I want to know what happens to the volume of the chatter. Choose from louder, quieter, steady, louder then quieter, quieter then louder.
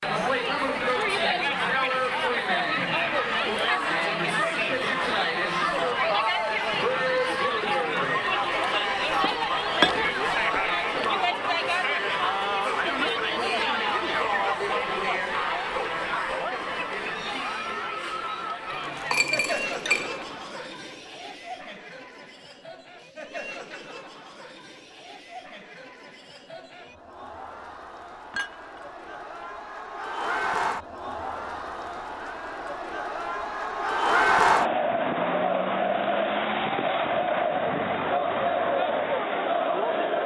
quieter then louder.